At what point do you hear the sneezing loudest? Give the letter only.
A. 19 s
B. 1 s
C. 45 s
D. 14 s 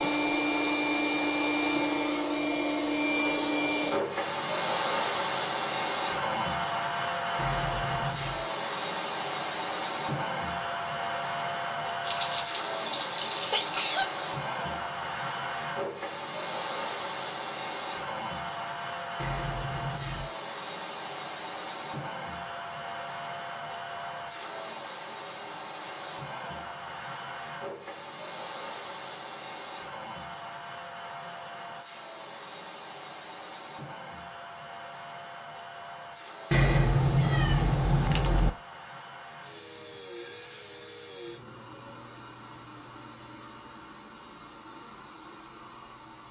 D.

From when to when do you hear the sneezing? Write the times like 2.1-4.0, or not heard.
12.0-14.1.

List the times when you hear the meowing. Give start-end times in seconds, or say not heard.
7.3-8.4, 19.1-20.3, 36.5-38.5.